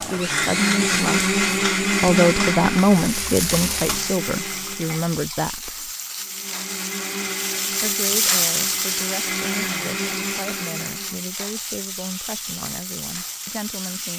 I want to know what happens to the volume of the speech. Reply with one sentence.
The volume of the speech goes down.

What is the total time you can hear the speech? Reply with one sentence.
The speech can be heard for 12 seconds in total.